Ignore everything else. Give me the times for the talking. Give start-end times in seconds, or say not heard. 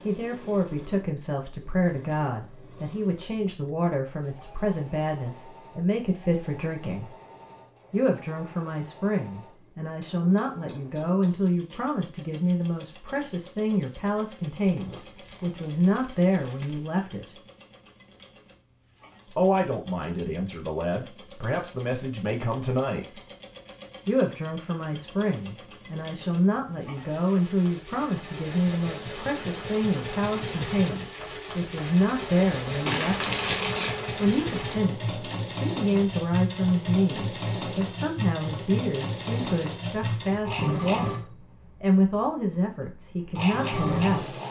0.0-7.1, 7.9-17.4, 19.3-23.2, 24.1-33.4, 34.1-41.2, 41.8-44.4.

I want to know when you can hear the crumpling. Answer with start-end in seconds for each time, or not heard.
14.7-17.1, 32.9-33.9.